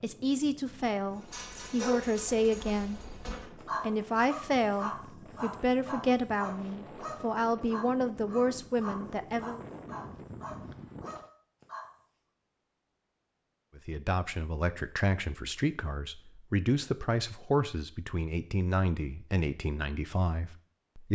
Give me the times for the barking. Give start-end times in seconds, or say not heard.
1.2-12.0.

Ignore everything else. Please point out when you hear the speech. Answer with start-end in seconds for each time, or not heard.
0.0-3.0, 3.8-9.6, 13.8-21.0.